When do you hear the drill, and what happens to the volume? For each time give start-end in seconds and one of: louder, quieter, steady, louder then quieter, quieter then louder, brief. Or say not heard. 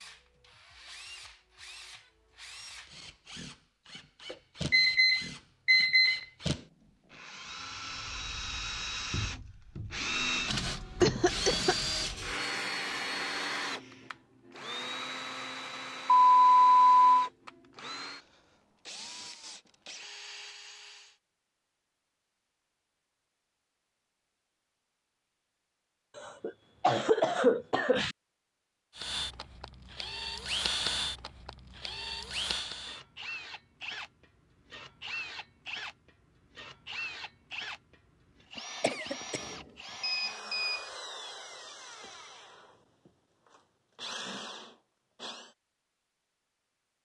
0.0-21.1 louder then quieter
28.9-45.5 quieter.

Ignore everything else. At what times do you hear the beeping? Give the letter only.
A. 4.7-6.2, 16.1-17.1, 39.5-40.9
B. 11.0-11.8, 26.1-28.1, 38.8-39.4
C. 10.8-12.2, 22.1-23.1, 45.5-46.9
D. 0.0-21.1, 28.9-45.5
A.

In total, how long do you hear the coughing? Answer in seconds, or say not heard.
3 s.